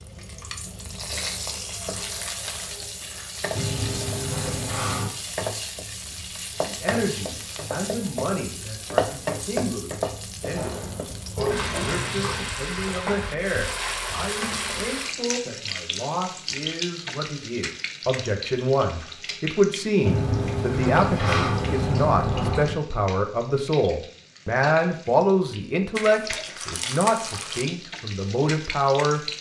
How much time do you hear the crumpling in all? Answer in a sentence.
You can hear the crumpling for 3 seconds altogether.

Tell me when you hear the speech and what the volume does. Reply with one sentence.
You can hear the speech from 6.1 to 29.2 s, getting louder.